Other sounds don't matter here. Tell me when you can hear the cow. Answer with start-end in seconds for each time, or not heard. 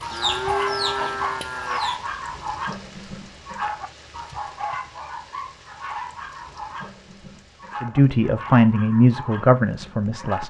0.1-1.8.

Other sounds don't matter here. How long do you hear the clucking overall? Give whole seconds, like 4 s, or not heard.
2 s.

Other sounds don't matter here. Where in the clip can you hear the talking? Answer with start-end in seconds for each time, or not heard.
7.8-10.4.